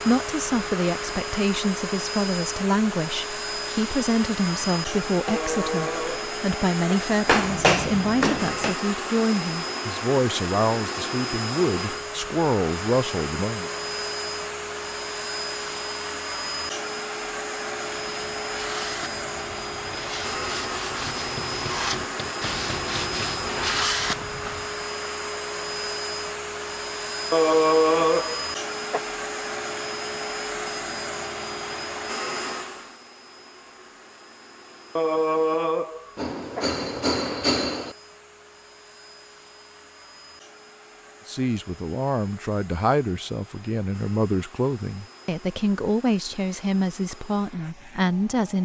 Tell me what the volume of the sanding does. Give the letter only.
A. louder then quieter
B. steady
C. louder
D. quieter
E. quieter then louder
C.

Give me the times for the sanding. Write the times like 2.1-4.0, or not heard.
17.9-24.7.